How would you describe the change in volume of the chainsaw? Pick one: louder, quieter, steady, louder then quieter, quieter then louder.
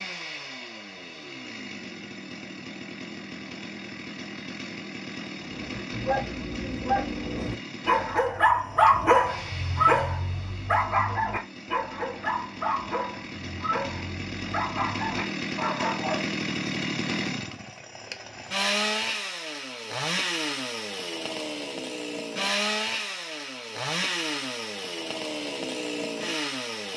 louder.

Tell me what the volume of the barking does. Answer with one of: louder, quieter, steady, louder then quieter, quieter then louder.
louder then quieter.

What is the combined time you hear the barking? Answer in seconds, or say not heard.
11 s.